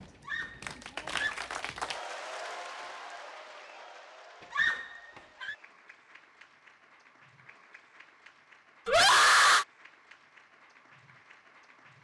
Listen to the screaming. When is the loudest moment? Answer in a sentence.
The volume of the screaming peaks at 9 seconds.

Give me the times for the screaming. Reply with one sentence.
You can hear the screaming from 0.2 to 1.5 s, from 4.5 to 5.5 s and from 8.8 to 9.7 s.